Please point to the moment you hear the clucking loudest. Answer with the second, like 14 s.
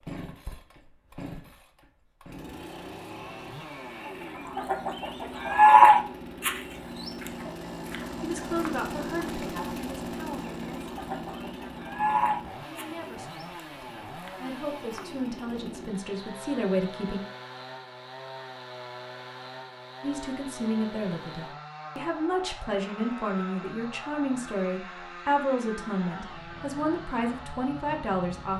6 s.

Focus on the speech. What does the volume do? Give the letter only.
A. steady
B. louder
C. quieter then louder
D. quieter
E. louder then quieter
B.